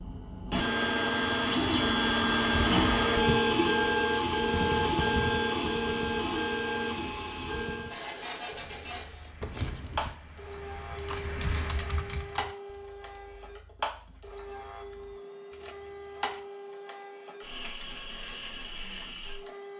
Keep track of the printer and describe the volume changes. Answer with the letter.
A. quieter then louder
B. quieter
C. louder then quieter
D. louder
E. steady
B.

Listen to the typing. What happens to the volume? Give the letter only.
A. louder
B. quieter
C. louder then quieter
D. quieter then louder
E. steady
C.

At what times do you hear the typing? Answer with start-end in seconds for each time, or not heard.
8.7-15.2.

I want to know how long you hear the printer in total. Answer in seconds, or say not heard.
20 s.